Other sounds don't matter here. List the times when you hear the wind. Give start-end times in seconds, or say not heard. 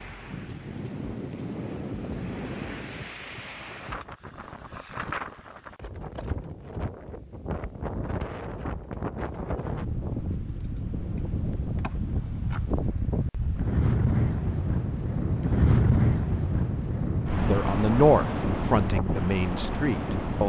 0.0-20.4.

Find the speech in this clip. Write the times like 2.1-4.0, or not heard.
17.4-20.4.